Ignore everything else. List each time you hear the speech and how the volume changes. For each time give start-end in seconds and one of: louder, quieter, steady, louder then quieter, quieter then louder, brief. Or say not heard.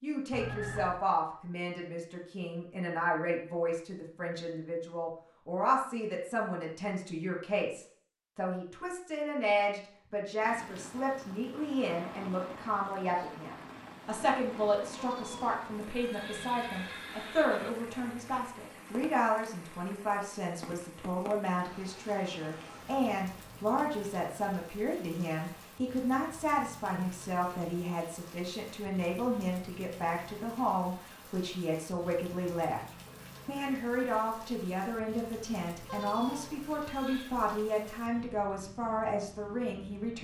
0.0-40.1 steady.